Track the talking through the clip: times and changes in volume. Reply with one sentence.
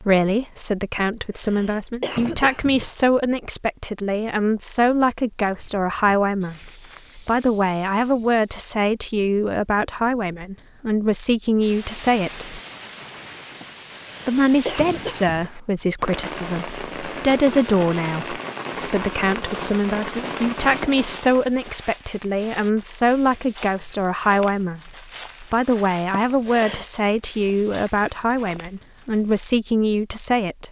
You can hear the talking from 0.0 to 12.6 s, at a steady volume; and from 14.2 to 30.6 s, at a steady volume.